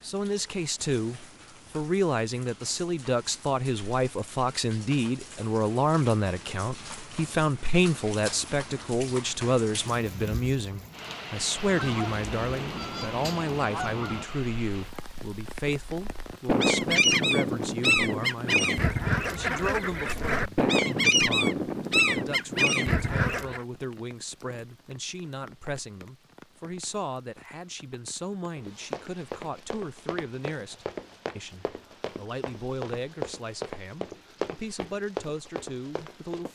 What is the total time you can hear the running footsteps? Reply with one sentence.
You can hear the running footsteps for 8 seconds altogether.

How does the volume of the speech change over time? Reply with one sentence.
The volume of the speech goes down.